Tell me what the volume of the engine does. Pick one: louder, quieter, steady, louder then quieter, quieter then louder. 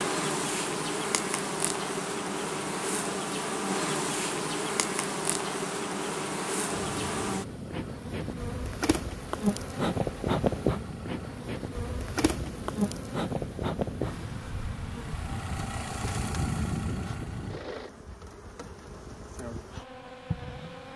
louder.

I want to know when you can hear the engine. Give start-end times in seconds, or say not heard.
6.7-17.9.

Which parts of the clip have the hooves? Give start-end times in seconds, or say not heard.
not heard.